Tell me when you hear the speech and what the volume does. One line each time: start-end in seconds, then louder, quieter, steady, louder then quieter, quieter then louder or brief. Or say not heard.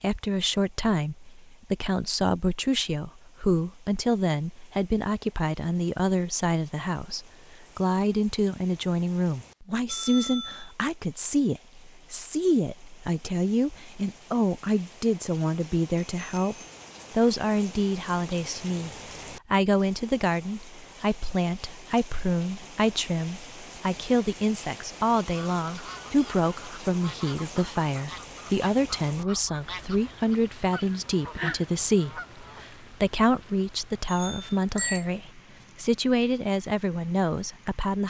0.0-38.0 steady.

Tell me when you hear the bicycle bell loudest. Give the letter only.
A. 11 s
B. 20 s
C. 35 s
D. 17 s
C.